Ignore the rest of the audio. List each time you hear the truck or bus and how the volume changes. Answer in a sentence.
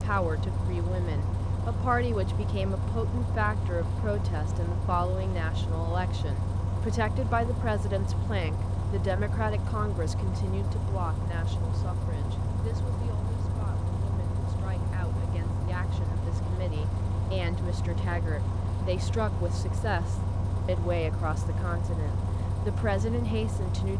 You can hear the truck or bus from 0.0 to 23.9 s, at a steady volume.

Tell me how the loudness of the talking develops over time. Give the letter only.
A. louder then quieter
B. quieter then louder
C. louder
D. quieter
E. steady
B.